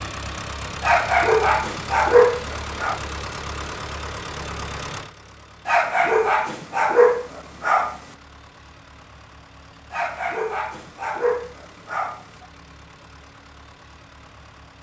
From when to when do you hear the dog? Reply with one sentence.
You can hear the dog from 0.8 to 3.0 s, from 5.7 to 8.0 s and from 9.9 to 12.4 s.